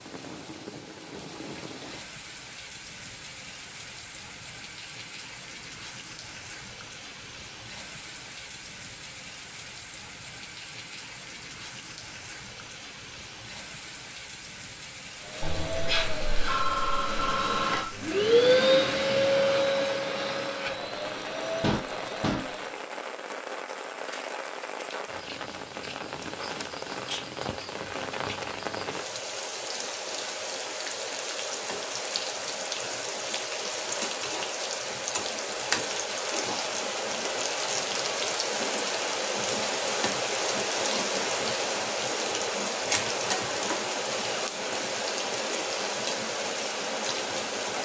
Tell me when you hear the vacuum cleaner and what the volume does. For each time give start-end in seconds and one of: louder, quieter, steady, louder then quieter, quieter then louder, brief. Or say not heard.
15.2-22.8 louder then quieter.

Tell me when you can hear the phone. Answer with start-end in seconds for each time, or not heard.
15.4-17.9.